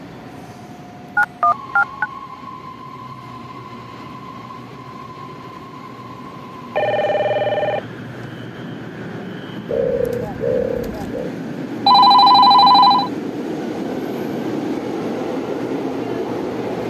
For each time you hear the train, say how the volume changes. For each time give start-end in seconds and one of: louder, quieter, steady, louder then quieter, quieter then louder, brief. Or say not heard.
0.0-16.8 louder.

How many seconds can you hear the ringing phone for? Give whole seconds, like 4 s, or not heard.
3 s.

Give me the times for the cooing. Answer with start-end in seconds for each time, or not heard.
9.7-11.3.